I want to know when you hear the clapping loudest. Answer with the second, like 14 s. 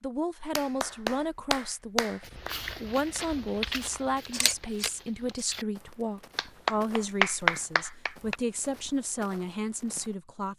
7 s.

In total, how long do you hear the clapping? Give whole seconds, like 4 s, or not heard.
4 s.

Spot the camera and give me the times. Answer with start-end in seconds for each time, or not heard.
4.2-5.5.